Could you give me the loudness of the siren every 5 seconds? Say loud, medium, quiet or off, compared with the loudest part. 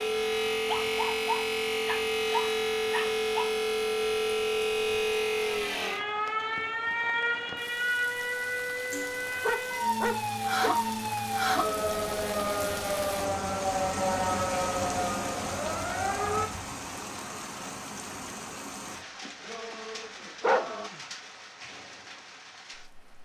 loud, loud, loud, loud, off.